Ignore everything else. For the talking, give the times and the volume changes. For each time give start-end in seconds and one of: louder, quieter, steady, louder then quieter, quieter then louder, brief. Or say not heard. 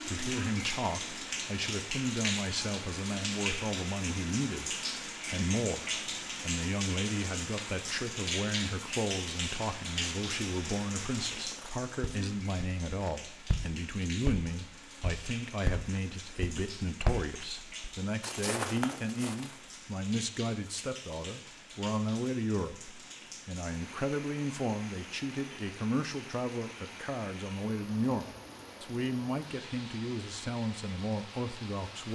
0.1-32.0 steady.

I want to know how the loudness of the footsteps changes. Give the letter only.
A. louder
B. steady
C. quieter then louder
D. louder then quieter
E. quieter
A.